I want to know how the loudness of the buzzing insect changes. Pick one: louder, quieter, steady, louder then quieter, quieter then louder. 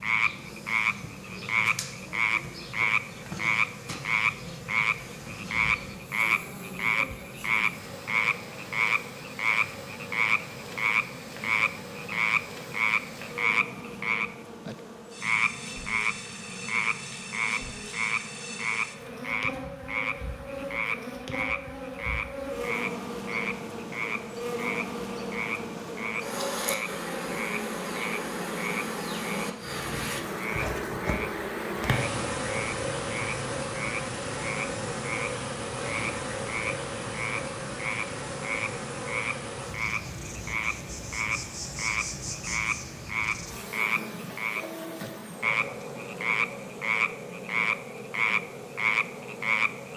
louder then quieter.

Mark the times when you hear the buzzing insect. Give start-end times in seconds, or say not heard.
0.0-49.9.